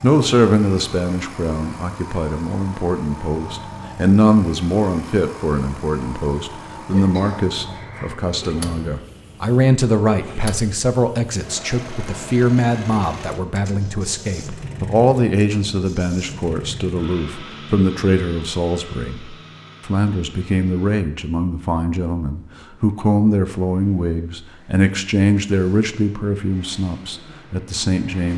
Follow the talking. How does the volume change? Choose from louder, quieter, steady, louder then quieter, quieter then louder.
steady.